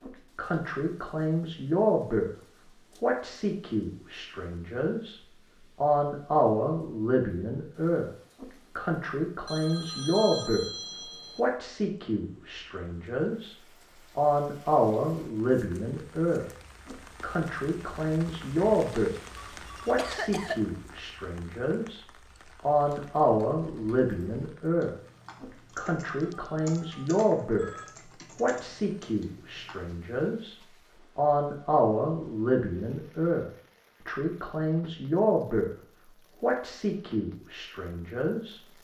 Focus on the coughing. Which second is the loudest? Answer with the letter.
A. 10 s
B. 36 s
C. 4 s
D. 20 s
D.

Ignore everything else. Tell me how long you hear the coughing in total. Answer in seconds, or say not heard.
2 s.